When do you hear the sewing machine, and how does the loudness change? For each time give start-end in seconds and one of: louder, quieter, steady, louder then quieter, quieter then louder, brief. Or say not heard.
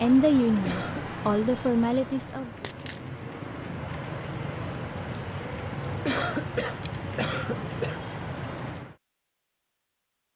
not heard.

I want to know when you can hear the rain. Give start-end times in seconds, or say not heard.
0.0-8.9.